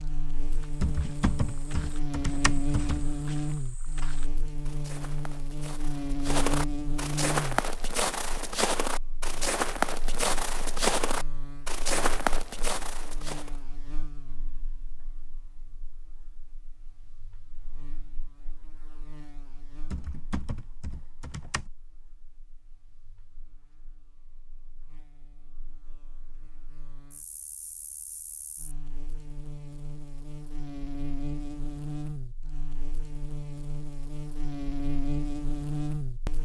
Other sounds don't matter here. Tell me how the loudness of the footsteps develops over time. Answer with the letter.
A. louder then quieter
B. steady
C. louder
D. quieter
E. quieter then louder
C.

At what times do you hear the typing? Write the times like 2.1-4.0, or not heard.
0.8-3.0, 19.9-21.6.